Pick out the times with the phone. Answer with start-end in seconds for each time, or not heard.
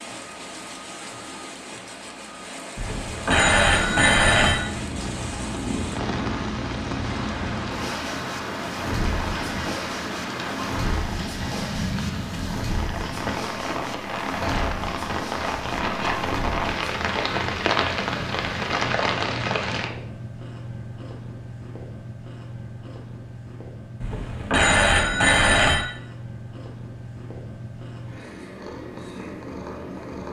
2.8-4.6, 24.0-25.9.